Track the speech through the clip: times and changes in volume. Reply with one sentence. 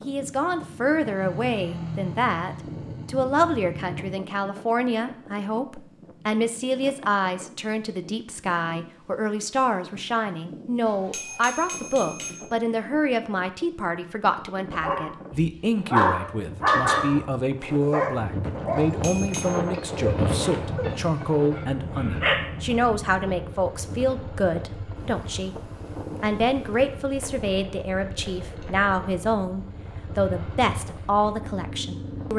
You can hear the speech from 0.1 to 32.3 s, at a steady volume.